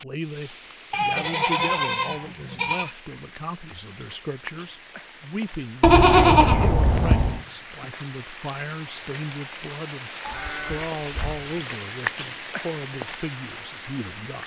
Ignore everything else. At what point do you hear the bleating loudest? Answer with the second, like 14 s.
6 s.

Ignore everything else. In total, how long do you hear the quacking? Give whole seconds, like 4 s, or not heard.
not heard.